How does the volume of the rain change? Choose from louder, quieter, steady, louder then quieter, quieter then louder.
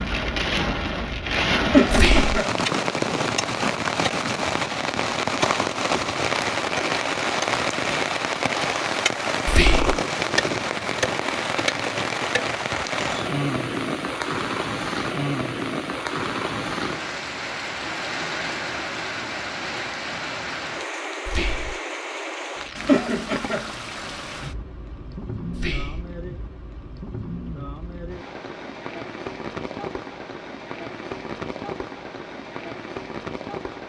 quieter.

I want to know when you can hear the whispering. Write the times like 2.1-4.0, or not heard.
1.9-2.4, 9.4-10.0, 21.2-21.8, 25.5-26.1.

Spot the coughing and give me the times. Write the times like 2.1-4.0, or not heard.
1.7-2.5, 22.9-23.7.